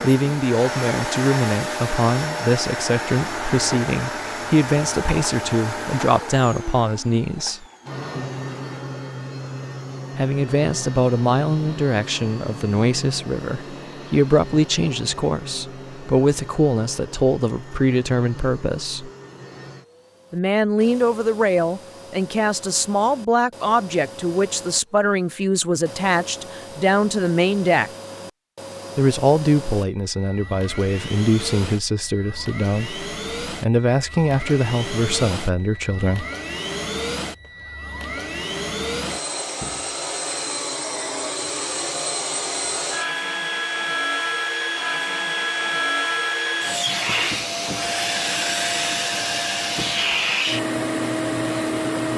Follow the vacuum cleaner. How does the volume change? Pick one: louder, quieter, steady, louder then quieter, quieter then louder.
quieter then louder.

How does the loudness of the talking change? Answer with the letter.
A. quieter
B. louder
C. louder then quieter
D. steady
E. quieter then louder
D.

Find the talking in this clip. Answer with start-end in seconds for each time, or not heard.
0.0-7.7, 10.2-19.1, 20.3-27.9, 28.9-36.2.